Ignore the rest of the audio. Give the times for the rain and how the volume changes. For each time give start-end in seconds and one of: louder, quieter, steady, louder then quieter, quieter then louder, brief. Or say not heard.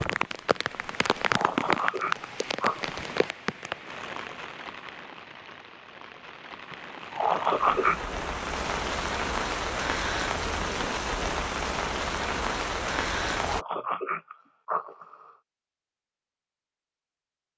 0.0-13.7 quieter then louder.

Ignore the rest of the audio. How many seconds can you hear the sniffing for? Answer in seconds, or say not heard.
5 s.